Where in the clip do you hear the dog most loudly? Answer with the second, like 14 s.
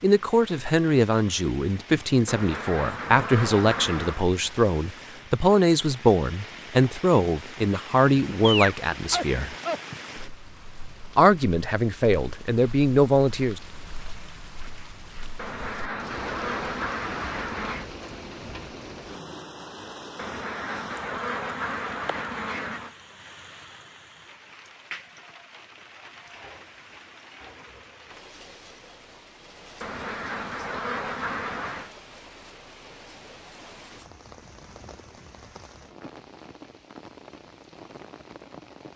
9 s.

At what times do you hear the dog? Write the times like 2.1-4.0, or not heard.
8.4-10.2.